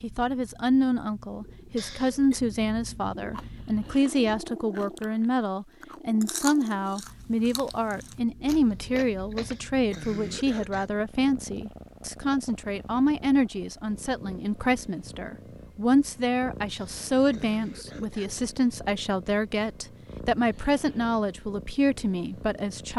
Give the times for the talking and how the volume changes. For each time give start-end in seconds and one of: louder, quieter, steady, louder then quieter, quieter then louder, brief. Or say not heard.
0.0-22.9 steady.